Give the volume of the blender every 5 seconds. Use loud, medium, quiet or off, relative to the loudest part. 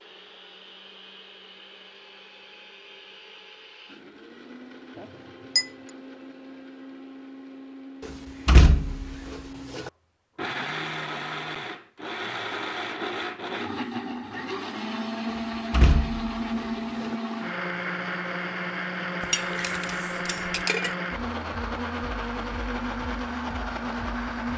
quiet, quiet, loud, loud, loud.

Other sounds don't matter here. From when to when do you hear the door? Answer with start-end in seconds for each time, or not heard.
8.1-9.9, 15.3-17.1.